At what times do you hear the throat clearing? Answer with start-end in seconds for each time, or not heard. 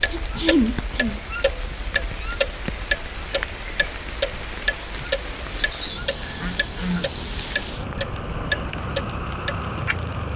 0.1-1.2, 6.3-7.2.